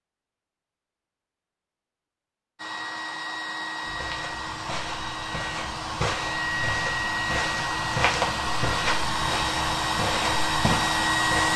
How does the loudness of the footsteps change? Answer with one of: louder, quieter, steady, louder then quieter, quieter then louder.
louder.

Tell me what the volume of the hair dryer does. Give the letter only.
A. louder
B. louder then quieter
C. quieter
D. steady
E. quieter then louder
A.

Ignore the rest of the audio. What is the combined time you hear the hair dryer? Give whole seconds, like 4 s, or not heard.
9 s.